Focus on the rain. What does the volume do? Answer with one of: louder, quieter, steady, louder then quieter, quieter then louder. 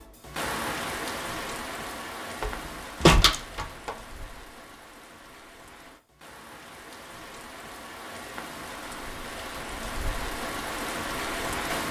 quieter then louder.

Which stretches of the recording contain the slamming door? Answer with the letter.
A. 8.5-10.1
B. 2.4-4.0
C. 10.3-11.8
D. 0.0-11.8
B.